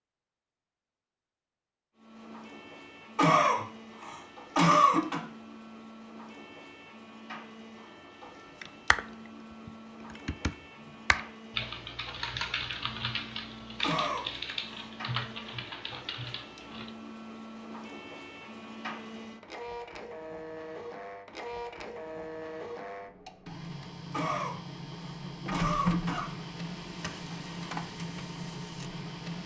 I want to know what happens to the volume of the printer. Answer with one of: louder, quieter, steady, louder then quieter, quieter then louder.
louder.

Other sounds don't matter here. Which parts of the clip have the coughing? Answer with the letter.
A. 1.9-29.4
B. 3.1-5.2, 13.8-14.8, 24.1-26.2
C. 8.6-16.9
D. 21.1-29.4
B.